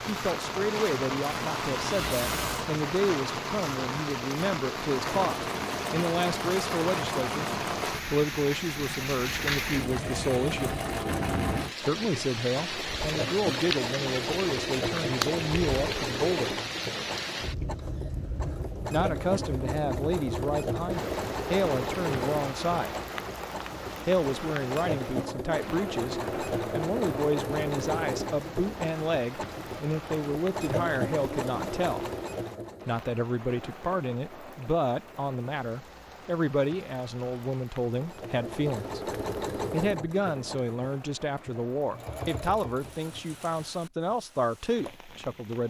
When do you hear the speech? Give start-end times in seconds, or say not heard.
0.1-10.8, 11.8-16.6, 18.9-22.9, 24.1-32.0, 32.9-39.1, 39.7-45.6.